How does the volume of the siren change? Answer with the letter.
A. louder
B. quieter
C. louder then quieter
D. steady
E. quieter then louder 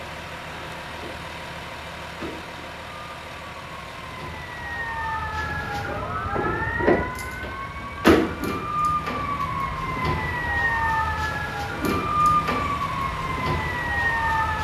A.